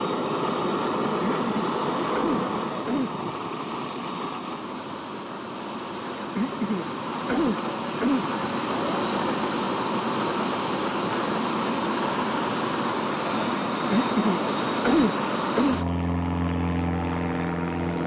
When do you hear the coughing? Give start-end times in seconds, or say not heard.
1.2-3.2, 6.3-8.2, 13.9-15.8.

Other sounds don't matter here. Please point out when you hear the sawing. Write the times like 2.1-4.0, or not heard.
not heard.